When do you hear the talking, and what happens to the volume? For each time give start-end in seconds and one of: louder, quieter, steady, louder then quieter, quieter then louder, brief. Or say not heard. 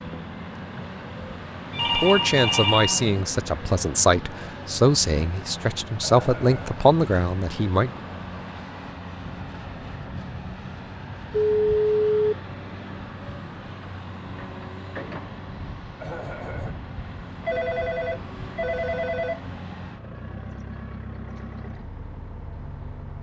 1.9-7.9 steady.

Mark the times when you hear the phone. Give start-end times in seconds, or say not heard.
1.7-3.2, 11.3-12.3, 17.4-19.4.